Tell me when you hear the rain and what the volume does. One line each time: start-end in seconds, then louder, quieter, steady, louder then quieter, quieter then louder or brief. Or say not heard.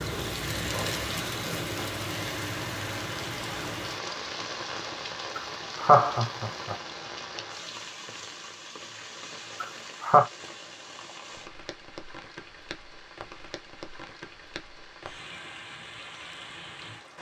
0.0-17.1 quieter.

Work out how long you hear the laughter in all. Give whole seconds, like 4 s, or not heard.
2 s.